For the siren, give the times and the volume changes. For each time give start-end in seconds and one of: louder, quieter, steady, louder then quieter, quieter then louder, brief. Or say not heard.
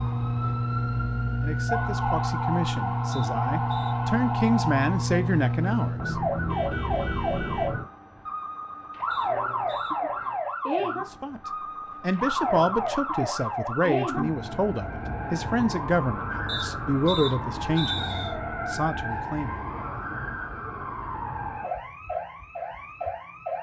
0.0-23.5 quieter.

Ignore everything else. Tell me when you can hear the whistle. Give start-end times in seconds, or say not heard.
3.1-4.0, 9.1-9.9, 16.4-18.4.